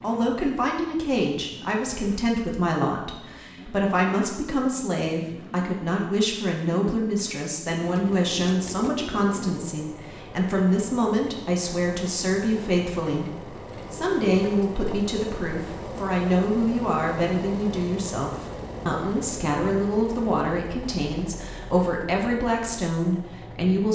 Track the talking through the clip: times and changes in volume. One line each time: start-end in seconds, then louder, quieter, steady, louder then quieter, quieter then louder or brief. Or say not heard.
0.0-23.8 steady.